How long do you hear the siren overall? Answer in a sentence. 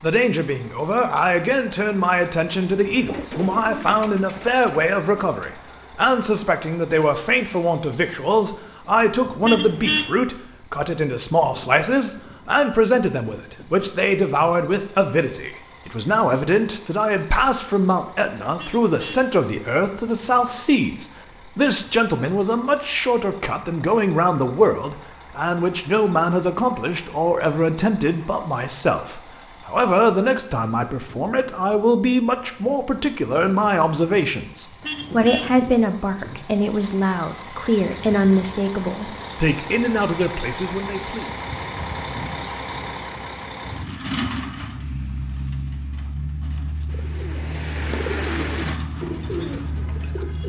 You can't hear the siren here.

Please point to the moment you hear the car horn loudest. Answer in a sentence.
The loudest moment of the car horn is at 10 seconds.